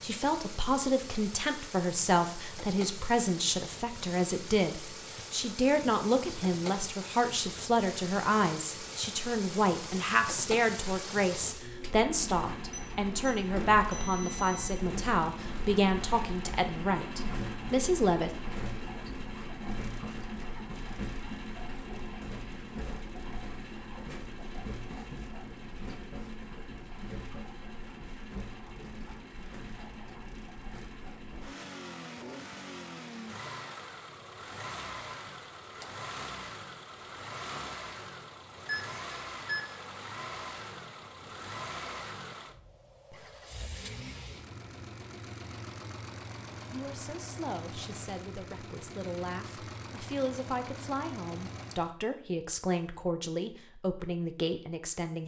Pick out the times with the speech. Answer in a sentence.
The speech can be heard from 0.0 to 18.3 s and from 46.7 to 55.2 s.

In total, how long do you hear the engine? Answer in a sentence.
You can hear the engine for 52 seconds altogether.